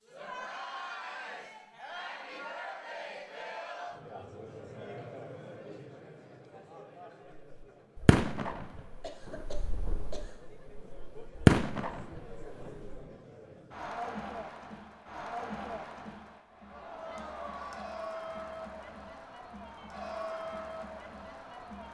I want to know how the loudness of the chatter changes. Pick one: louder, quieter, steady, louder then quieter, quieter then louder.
quieter then louder.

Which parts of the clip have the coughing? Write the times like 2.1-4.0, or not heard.
9.0-10.4.